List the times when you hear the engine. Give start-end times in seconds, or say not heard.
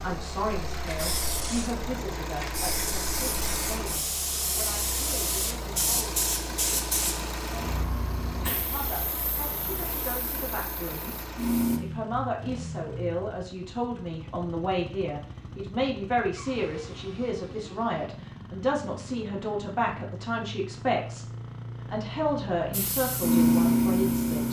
0.0-24.4.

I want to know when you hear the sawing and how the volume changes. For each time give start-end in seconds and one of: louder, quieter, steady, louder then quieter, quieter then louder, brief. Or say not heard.
not heard.